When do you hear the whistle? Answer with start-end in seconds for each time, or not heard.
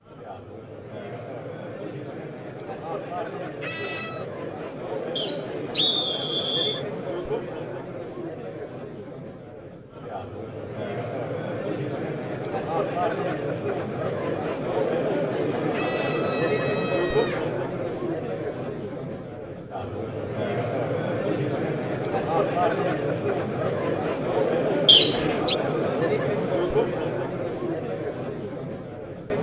5.2-6.8, 24.9-25.6.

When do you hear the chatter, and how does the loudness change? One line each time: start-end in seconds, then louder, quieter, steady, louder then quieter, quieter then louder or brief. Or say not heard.
0.0-29.3 louder.